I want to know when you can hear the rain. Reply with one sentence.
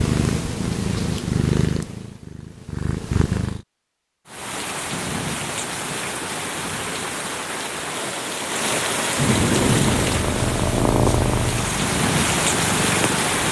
The rain can be heard from 4.2 to 13.4 s.